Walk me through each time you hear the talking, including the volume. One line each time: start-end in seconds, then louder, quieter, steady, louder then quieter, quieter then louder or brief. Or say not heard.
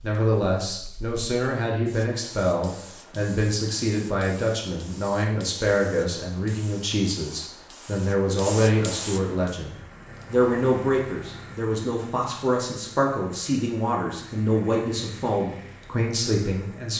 0.0-16.9 steady.